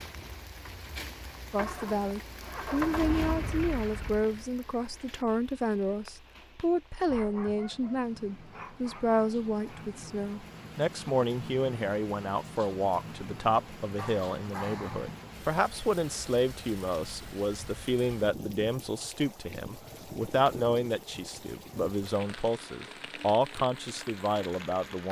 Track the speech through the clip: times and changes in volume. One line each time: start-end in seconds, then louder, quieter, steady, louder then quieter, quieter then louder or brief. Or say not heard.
1.5-25.0 steady.